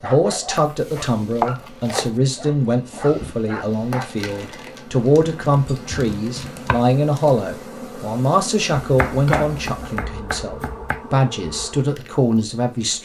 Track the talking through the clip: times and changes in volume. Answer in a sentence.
The talking can be heard from 0.0 to 13.0 s, at a steady volume.